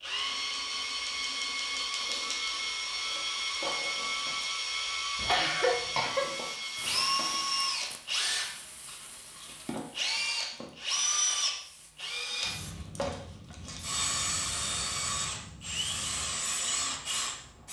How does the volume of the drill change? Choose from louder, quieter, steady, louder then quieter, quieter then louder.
steady.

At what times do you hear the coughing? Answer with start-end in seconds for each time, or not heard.
5.2-6.2.